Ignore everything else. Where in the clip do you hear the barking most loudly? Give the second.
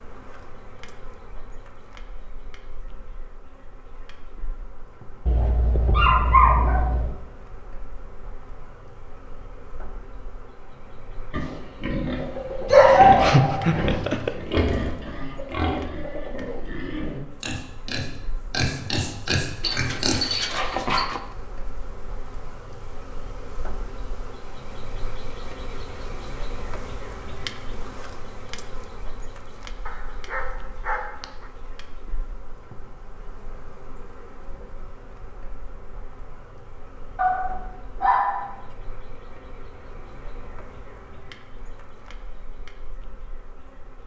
13 s.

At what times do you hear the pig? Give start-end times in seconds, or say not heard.
11.3-20.6.